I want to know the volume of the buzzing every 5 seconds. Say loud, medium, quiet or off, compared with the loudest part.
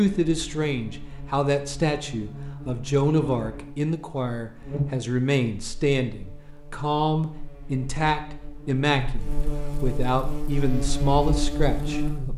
medium, medium, loud.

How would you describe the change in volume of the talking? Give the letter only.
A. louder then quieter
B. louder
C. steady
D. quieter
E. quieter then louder
C.